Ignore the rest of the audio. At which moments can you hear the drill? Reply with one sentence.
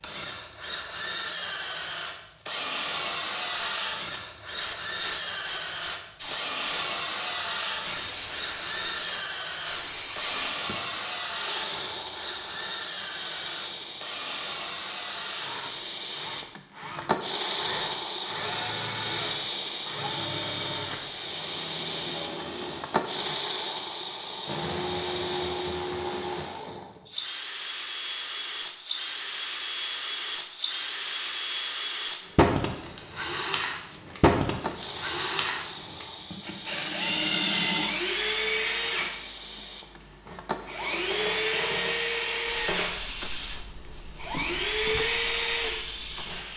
You can hear the drill from 0.0 to 23.4 s, from 24.4 to 39.2 s, from 40.2 to 43.0 s and from 44.1 to 46.4 s.